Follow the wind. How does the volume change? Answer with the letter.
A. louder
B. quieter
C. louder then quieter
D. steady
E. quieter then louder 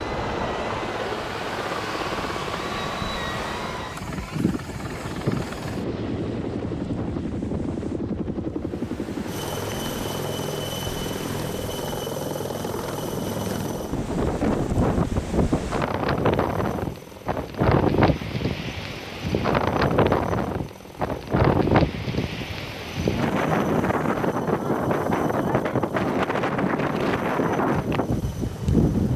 A.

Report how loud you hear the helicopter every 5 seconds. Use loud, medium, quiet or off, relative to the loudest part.
loud, loud, loud, quiet, quiet, quiet.